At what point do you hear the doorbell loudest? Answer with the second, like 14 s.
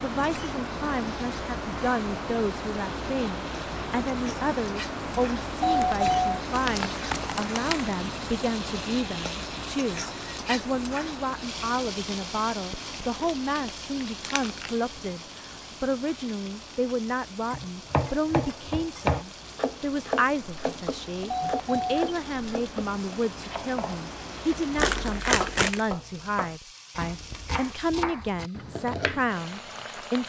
6 s.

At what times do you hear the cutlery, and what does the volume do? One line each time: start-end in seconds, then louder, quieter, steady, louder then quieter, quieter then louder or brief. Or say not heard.
not heard.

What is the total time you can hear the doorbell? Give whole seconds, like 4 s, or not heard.
2 s.